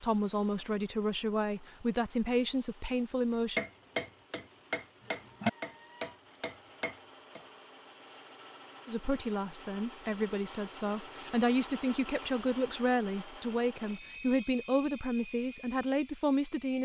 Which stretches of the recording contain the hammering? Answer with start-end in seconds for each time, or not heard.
3.5-7.5.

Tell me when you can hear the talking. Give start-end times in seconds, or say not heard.
0.0-3.6, 8.8-16.7.